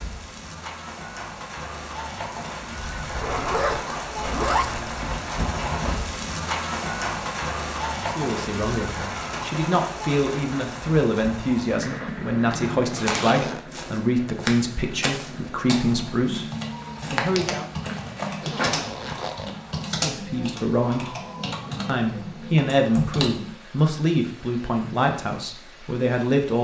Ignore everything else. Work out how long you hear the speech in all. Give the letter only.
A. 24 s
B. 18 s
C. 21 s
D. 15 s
D.